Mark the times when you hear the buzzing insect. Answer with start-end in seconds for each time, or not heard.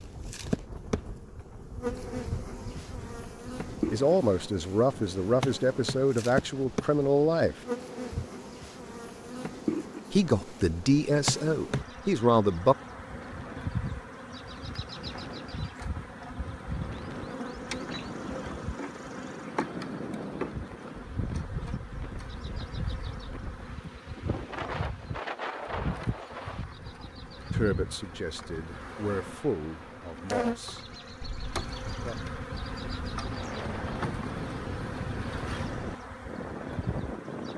0.0-37.5.